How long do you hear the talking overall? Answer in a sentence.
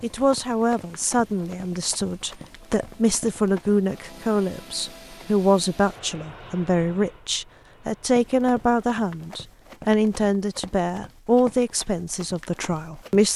The talking can be heard for 13 seconds in total.